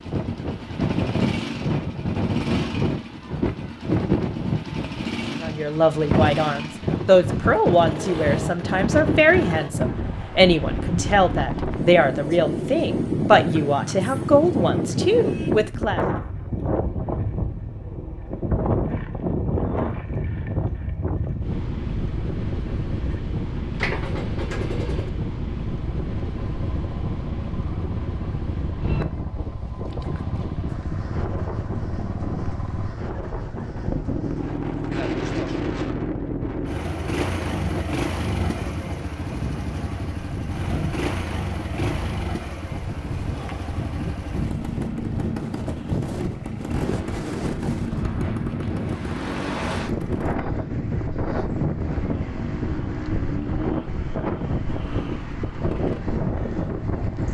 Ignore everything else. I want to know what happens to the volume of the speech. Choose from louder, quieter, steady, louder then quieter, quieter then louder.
steady.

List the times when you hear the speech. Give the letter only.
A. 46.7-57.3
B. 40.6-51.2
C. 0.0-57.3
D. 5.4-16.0
D.